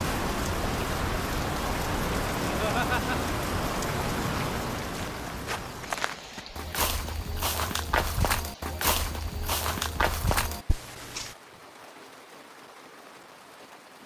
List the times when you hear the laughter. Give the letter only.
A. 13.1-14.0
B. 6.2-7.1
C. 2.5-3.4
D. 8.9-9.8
C.